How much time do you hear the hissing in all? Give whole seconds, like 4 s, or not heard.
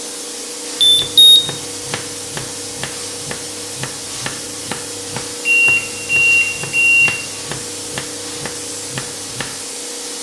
10 s.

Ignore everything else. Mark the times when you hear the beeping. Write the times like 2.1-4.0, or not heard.
0.8-1.4, 5.5-7.2.